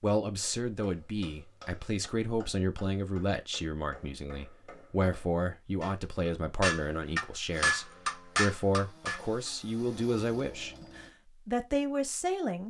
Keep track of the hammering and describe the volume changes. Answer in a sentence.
The loudness of the hammering goes up.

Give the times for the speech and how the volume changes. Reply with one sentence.
The speech can be heard from 0.0 to 12.6 s, at a steady volume.